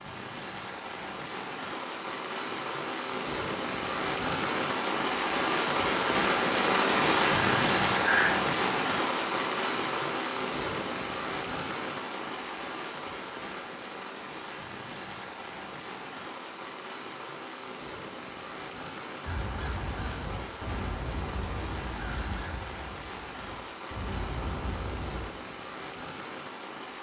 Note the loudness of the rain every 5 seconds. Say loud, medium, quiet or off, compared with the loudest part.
medium, loud, medium, quiet, quiet, quiet.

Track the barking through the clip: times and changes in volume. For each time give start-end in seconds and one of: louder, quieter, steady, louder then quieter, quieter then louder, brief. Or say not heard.
not heard.